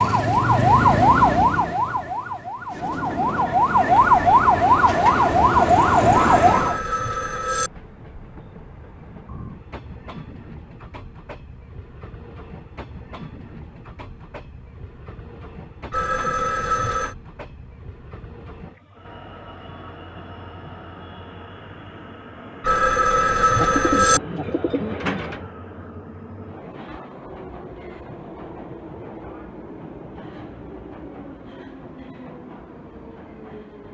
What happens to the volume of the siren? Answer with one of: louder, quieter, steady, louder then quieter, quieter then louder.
quieter then louder.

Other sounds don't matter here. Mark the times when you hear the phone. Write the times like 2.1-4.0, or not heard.
6.2-7.7, 15.9-17.1, 22.6-24.2.